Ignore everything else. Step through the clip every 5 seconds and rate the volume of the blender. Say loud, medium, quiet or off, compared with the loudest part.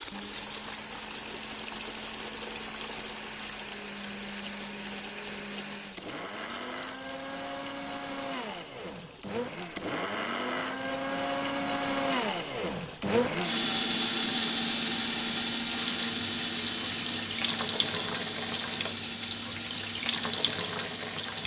quiet, medium, loud, loud, medium.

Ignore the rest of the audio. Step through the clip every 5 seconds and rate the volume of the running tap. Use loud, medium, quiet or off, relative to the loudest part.
loud, medium, medium, loud, loud.